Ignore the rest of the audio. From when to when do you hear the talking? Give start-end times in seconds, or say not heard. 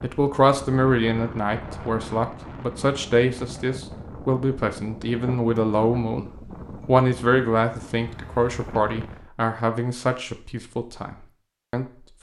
0.0-6.2, 6.8-11.8.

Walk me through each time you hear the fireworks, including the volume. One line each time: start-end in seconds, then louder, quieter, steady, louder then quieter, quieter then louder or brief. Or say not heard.
not heard.